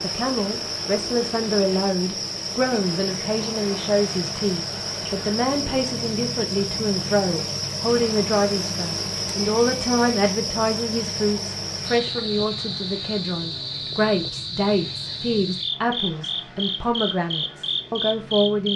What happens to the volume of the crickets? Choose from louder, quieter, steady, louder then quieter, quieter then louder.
steady.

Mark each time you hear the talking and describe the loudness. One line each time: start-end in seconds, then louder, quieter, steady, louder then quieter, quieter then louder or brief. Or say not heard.
0.0-18.7 steady.